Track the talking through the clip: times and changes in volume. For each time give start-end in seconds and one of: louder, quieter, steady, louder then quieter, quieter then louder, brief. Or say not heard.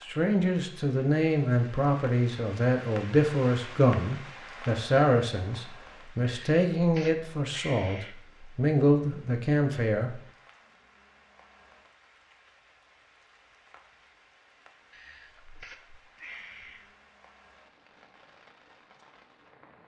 0.0-10.2 steady.